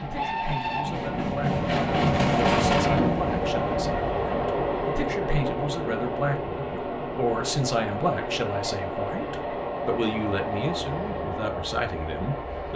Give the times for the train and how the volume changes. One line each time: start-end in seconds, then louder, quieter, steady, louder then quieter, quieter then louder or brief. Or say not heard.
0.0-12.7 quieter.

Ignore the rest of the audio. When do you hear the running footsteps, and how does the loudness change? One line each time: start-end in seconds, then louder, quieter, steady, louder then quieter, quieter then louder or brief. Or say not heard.
not heard.